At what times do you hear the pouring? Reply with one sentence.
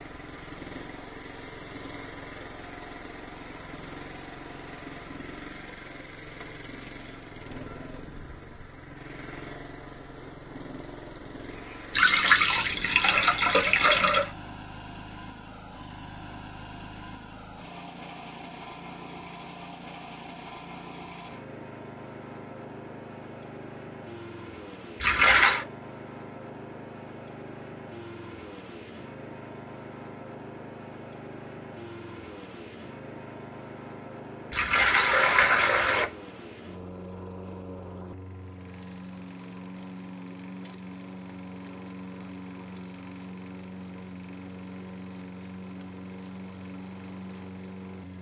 You can hear the pouring from 11.9 to 14.3 s, from 25.0 to 25.6 s and from 34.5 to 36.0 s.